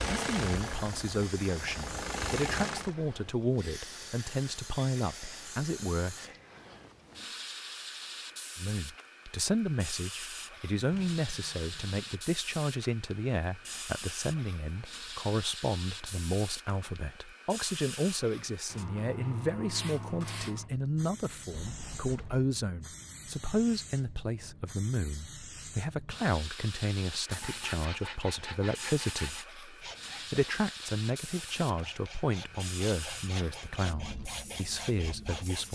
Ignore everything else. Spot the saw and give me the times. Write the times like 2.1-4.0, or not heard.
27.2-35.7.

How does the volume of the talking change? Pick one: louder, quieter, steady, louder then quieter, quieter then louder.
steady.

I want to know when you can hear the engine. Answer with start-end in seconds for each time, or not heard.
0.0-3.0.